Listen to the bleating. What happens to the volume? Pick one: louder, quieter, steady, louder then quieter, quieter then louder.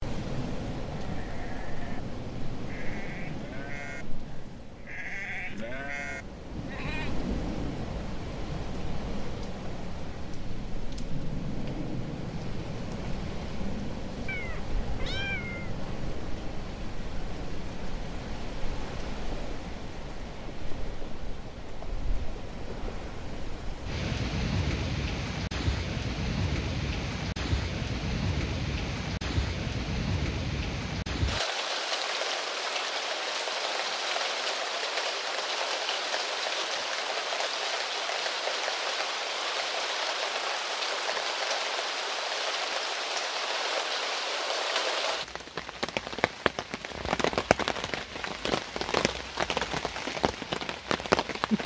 louder.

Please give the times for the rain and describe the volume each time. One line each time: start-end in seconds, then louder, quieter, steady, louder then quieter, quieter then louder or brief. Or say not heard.
0.0-51.6 louder.